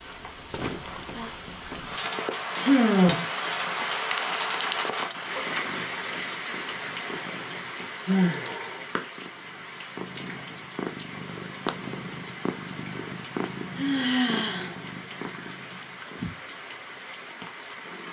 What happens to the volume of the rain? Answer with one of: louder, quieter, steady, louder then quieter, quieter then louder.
quieter.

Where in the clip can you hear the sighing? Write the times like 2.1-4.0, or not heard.
2.5-3.2, 7.0-8.8, 13.8-14.8.